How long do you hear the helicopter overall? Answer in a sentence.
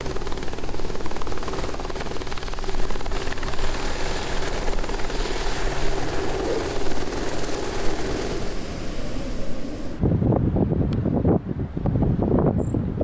The helicopter can be heard for 9 seconds in total.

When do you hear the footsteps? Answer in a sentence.
You can't hear the footsteps here.